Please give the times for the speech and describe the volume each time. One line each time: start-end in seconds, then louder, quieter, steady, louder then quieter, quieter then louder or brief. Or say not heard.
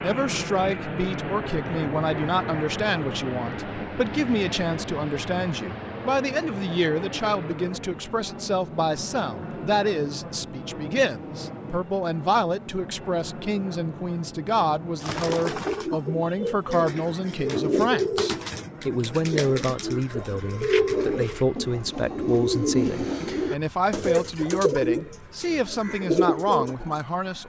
0.0-27.4 steady.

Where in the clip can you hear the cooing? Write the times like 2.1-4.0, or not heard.
15.0-27.0.